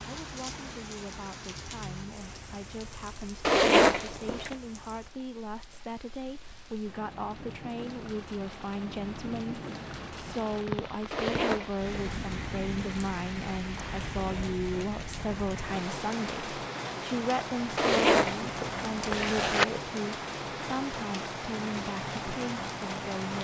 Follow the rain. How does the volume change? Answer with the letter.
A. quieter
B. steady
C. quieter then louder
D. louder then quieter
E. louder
E.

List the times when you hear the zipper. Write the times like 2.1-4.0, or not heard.
3.5-4.5, 11.1-11.8, 17.8-19.6.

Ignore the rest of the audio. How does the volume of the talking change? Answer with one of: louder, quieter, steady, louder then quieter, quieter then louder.
louder.